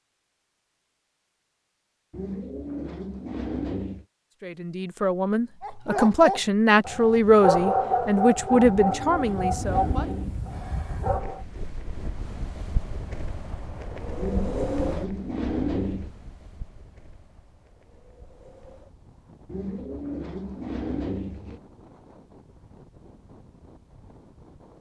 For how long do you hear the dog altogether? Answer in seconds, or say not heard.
6 s.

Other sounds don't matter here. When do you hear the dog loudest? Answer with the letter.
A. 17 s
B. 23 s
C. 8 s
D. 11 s
C.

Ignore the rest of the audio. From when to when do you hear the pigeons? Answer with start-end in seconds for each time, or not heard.
2.1-4.0, 8.5-10.6, 14.2-16.1, 19.4-21.6.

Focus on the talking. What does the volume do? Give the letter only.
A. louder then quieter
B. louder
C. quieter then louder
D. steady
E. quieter
A.